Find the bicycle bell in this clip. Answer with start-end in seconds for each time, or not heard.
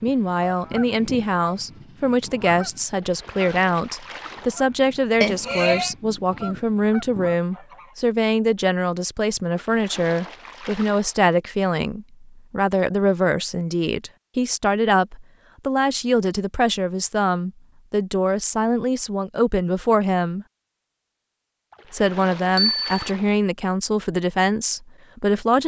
5.2-5.9, 22.6-23.1.